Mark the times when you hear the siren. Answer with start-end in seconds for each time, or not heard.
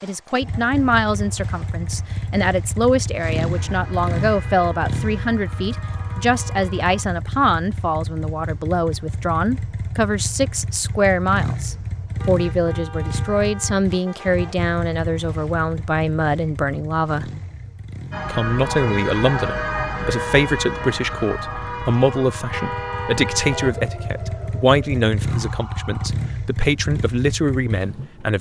3.5-7.0, 18.1-26.1.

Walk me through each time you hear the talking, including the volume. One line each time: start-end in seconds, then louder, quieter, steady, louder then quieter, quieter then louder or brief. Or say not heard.
0.0-17.3 steady
18.3-28.3 steady.